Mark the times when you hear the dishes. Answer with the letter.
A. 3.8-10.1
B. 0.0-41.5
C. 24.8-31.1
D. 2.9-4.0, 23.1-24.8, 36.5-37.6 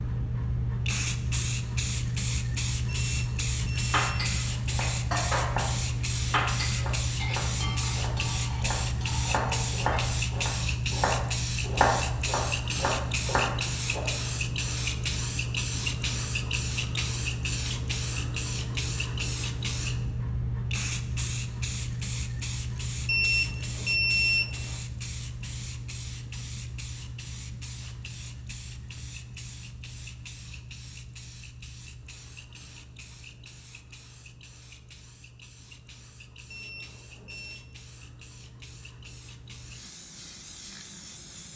A.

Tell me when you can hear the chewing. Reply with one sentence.
The chewing can't be heard in this clip.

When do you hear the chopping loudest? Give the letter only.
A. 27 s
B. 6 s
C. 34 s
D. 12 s
D.